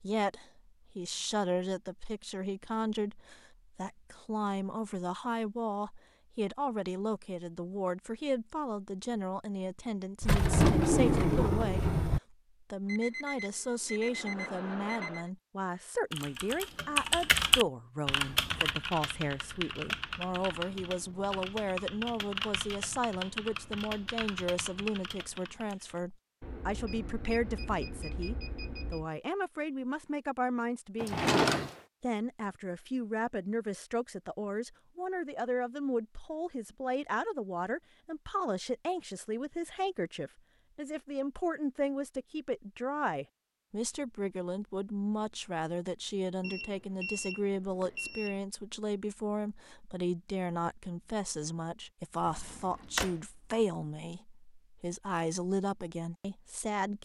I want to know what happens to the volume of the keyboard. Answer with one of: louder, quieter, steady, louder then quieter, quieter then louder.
quieter.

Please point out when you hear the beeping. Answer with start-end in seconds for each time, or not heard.
12.8-15.3, 26.4-29.1, 46.4-48.4.